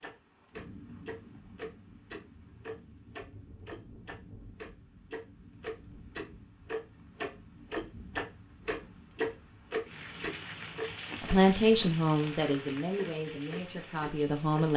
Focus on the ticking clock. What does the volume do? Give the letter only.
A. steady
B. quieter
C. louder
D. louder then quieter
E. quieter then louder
D.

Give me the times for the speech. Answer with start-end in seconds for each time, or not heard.
11.2-14.7.